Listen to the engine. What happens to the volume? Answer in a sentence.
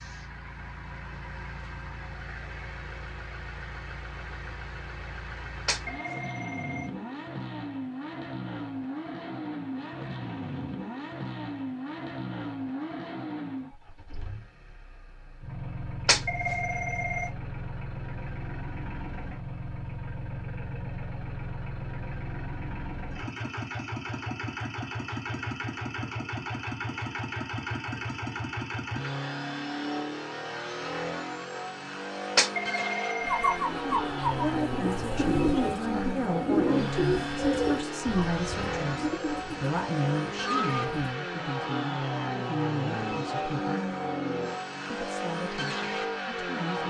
The loudness of the engine goes up.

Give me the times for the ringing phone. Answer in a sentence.
You can hear the ringing phone from 5.7 to 6.9 s, from 16.1 to 17.3 s and from 32.4 to 34.2 s.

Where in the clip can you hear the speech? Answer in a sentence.
You can hear the speech from 34.3 to 43.8 s and from 44.9 to 46.8 s.